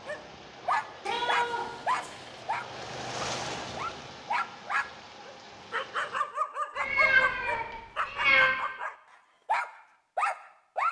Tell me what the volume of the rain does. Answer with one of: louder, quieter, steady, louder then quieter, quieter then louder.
louder then quieter.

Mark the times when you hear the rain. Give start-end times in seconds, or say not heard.
0.0-6.2.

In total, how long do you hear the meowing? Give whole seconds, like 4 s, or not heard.
3 s.